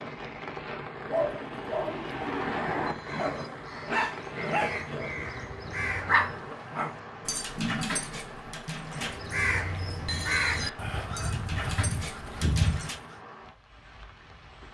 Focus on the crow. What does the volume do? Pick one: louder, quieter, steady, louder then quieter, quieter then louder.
louder.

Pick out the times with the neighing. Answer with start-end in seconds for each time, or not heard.
7.5-8.1.